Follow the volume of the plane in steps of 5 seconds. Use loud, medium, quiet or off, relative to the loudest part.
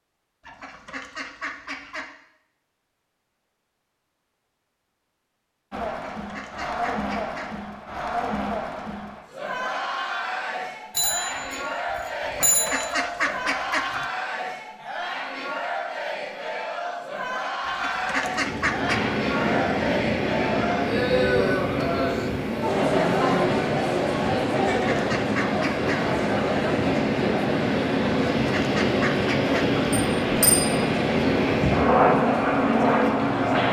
off, off, off, medium, medium, loud, loud.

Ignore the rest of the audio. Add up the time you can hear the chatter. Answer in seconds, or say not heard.
28 s.